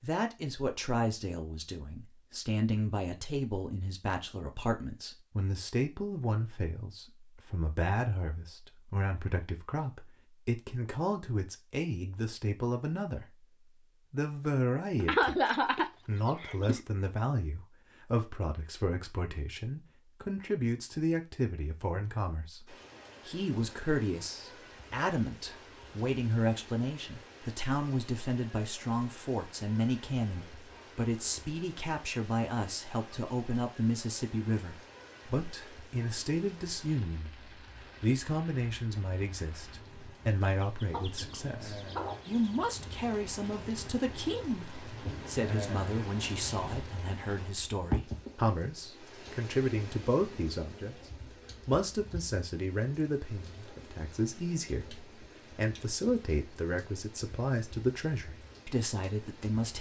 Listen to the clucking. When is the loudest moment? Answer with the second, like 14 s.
15 s.